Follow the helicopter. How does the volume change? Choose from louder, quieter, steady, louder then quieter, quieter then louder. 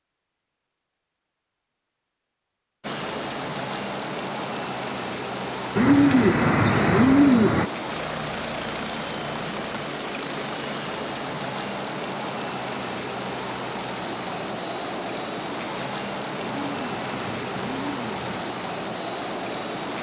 steady.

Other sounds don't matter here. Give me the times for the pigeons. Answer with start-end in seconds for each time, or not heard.
5.8-7.7, 16.4-18.4.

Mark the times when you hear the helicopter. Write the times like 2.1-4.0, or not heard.
2.8-19.9.